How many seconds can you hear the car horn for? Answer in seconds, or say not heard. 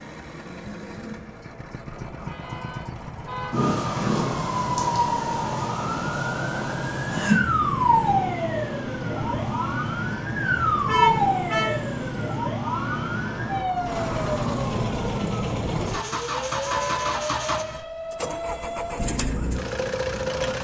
3 s.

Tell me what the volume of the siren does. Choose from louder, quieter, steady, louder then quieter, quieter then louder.
quieter.